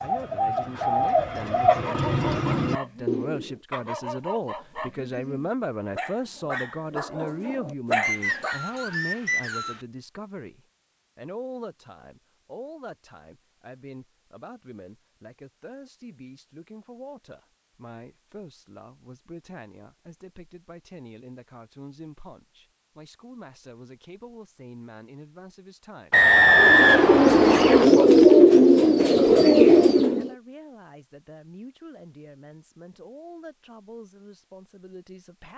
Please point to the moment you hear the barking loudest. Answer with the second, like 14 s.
8 s.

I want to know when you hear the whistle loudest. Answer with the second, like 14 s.
27 s.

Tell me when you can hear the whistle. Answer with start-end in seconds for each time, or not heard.
8.0-9.8, 26.1-27.9.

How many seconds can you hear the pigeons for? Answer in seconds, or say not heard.
7 s.